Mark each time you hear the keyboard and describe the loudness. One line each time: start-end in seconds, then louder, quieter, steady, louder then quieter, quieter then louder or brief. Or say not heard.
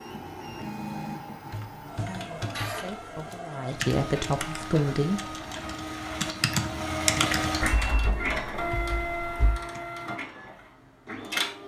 1.4-9.8 louder then quieter.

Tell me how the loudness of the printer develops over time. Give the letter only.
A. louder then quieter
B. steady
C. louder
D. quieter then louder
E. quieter
A.